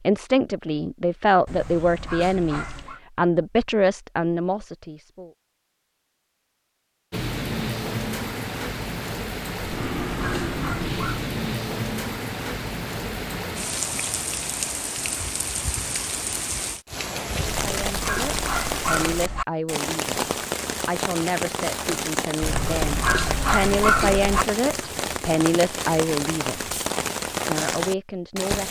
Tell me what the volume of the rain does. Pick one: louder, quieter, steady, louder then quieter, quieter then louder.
steady.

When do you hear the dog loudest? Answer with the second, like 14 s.
24 s.